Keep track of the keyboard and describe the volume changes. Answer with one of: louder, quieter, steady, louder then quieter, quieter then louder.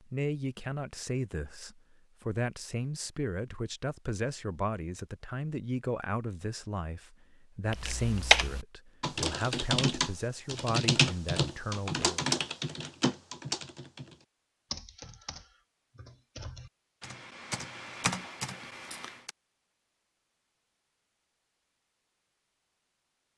quieter then louder.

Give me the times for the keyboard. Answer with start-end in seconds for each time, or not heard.
7.7-19.3.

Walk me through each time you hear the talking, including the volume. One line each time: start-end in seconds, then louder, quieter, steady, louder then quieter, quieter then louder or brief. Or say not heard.
0.0-12.2 steady.